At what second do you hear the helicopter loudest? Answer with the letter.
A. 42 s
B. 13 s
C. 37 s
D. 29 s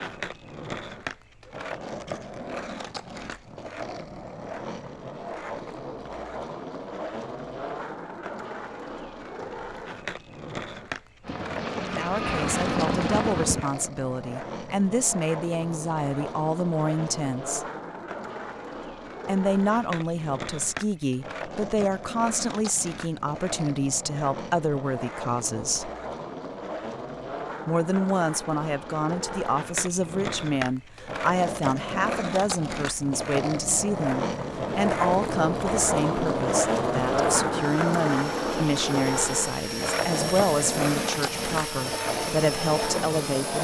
B.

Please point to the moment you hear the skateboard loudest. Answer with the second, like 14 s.
37 s.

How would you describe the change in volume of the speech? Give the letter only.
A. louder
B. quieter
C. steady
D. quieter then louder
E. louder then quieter
C.